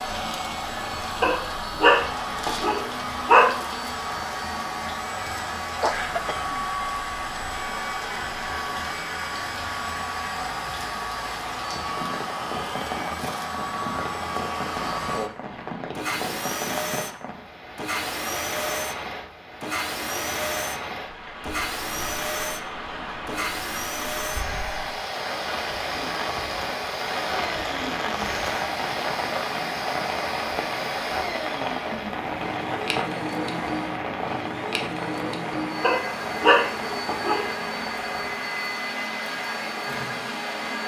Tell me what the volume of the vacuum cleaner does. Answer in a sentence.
The loudness of the vacuum cleaner stays about the same.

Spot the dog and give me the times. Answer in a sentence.
The dog can be heard from 1.2 to 3.5 s and from 35.8 to 37.5 s.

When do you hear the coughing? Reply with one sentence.
You can hear the coughing from 5.8 to 6.5 s.